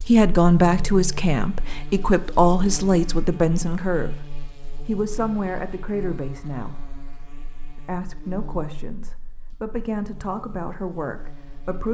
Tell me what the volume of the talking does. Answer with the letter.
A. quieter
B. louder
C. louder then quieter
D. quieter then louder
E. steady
A.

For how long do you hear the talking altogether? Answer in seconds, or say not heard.
11 s.